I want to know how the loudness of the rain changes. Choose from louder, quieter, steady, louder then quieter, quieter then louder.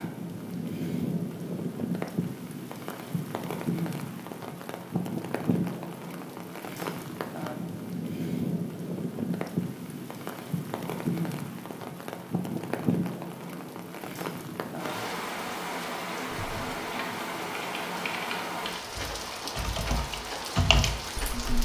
steady.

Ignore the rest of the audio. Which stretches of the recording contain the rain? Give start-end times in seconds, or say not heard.
0.0-21.6.